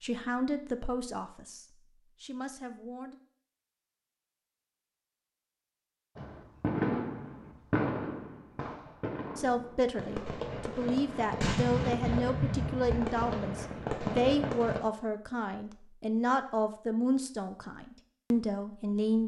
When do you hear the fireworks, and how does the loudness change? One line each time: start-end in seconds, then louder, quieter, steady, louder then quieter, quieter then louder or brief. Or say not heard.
6.2-14.8 quieter then louder.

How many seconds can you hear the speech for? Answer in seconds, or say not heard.
13 s.